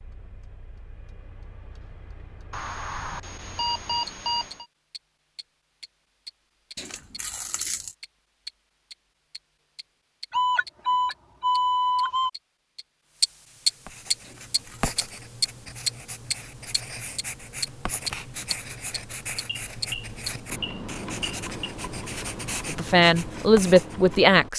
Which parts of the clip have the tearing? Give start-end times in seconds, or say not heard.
6.8-8.0, 14.2-15.0.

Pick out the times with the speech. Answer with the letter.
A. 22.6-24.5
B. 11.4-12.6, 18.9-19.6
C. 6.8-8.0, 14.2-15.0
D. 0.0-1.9
A.